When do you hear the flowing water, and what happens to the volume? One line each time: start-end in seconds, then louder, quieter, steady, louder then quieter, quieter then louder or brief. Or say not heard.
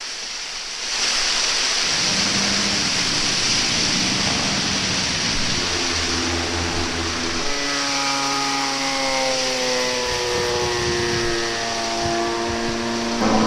0.0-13.4 quieter.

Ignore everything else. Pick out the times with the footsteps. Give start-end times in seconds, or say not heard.
not heard.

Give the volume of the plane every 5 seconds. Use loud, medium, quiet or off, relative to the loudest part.
medium, loud, loud.